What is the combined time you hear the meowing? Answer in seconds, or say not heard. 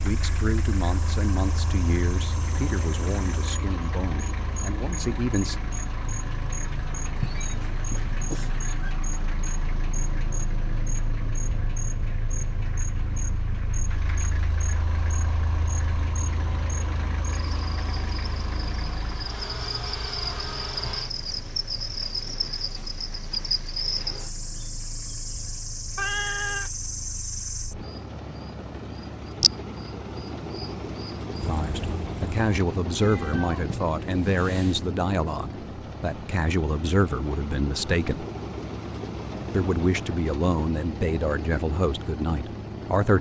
4 s.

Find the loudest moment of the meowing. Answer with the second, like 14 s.
26 s.